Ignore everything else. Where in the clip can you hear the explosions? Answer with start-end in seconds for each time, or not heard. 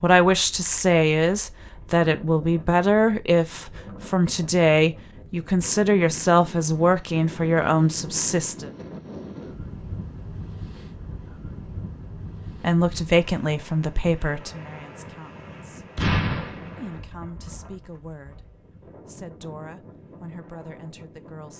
15.9-17.0.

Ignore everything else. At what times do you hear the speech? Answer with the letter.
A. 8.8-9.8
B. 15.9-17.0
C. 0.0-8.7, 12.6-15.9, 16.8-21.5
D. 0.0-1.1
C.